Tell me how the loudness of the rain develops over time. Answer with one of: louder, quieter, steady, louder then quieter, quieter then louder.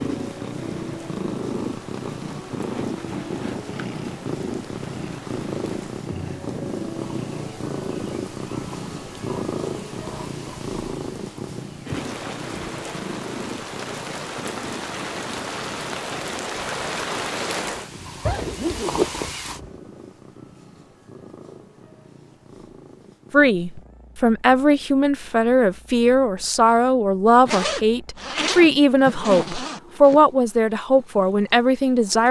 louder.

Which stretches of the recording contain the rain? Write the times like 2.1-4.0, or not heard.
0.0-19.6.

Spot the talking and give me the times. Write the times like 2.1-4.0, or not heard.
23.3-32.2.